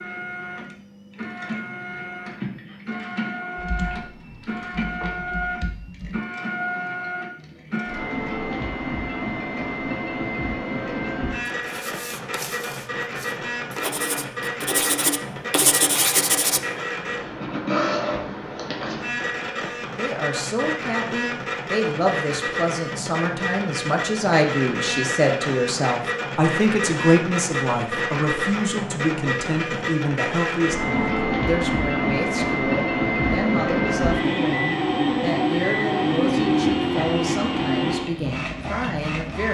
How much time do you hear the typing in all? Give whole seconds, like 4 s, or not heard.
3 s.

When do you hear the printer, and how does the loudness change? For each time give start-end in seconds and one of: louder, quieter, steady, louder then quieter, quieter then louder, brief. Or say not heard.
0.0-39.4 louder.